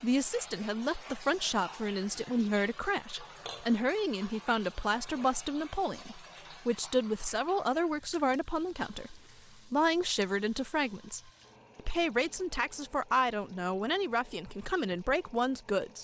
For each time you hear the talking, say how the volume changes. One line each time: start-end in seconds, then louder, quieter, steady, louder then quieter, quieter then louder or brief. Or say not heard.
0.0-15.9 steady.